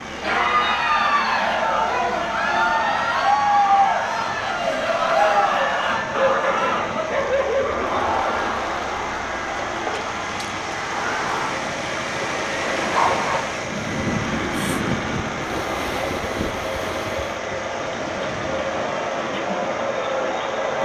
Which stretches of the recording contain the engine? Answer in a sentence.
The engine can be heard from 0.0 to 20.8 s.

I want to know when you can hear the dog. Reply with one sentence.
The dog can be heard from 6.2 to 8.1 s and from 12.9 to 13.6 s.